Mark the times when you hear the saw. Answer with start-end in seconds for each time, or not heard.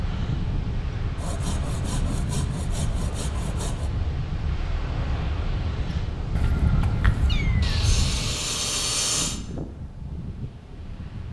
1.1-3.9, 7.6-9.4.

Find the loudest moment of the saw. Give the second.
9 s.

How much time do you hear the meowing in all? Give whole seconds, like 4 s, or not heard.
2 s.